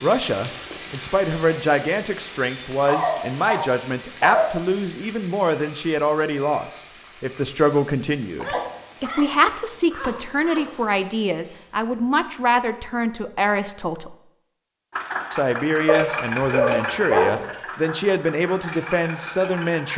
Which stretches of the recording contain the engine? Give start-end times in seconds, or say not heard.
14.9-19.9.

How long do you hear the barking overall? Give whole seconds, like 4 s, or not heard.
6 s.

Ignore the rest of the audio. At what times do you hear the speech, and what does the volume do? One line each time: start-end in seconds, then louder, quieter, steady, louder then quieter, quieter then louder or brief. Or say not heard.
0.0-14.2 steady
15.3-19.9 steady.